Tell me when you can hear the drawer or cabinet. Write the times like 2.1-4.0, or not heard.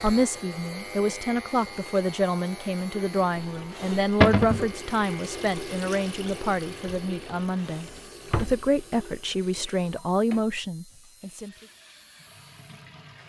4.2-4.7, 7.9-8.7.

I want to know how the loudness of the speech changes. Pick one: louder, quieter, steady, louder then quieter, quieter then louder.
steady.